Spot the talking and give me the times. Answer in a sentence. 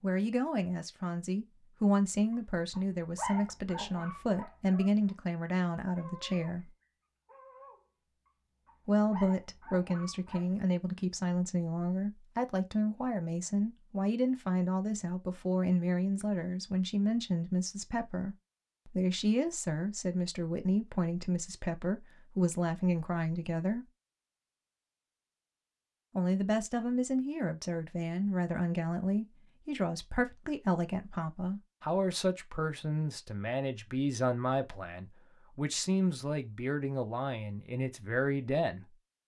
You can hear the talking from 0.0 to 6.7 s, from 8.8 to 23.9 s and from 26.1 to 39.0 s.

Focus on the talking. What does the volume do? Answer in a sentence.
The volume of the talking stays about the same.